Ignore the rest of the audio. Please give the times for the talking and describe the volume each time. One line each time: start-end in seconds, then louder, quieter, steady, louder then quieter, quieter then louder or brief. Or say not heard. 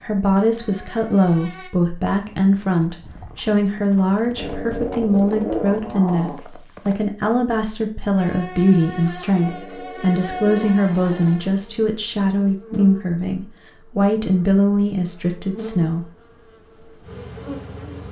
0.0-16.1 steady.